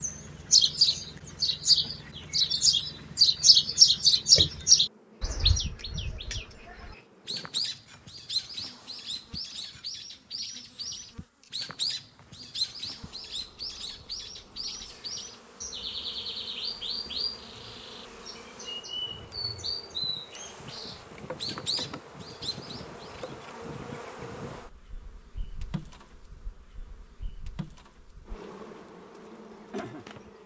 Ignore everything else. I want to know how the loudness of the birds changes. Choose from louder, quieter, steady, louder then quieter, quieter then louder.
quieter.